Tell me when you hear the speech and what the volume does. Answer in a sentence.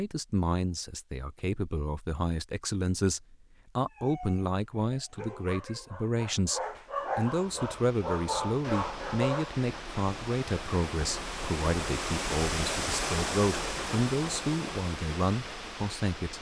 You can hear the speech from 0.0 to 16.3 s, at a steady volume.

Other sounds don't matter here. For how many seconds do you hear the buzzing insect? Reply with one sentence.
You can't hear the buzzing insect here.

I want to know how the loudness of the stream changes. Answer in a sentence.
The loudness of the stream goes up, then down.